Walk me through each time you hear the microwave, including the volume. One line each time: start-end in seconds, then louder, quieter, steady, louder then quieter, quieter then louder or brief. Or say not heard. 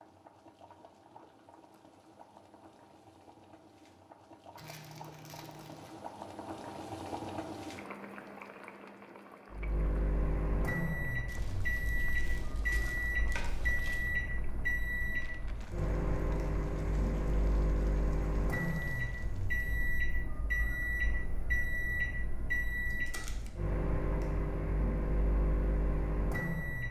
9.5-26.8 steady.